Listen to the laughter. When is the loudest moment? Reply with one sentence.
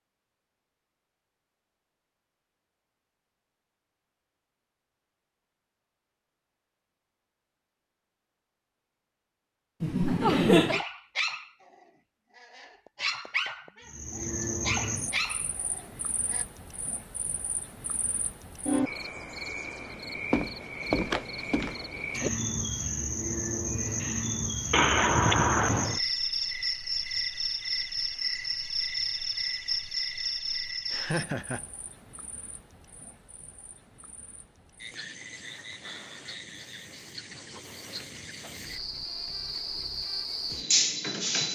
The volume of the laughter peaks at 10 seconds.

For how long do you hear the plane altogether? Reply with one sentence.
The plane can't be heard in this clip.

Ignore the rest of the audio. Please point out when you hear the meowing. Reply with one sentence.
The meowing can be heard from 24.7 to 26.0 s.